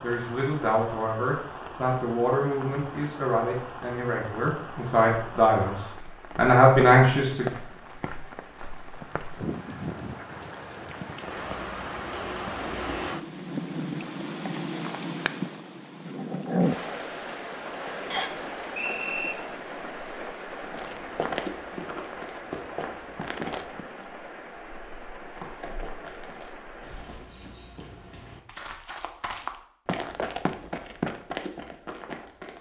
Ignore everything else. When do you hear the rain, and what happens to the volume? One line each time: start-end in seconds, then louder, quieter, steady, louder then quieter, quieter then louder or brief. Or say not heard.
0.0-27.4 louder then quieter.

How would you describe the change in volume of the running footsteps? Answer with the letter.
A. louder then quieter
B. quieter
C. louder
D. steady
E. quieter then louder
E.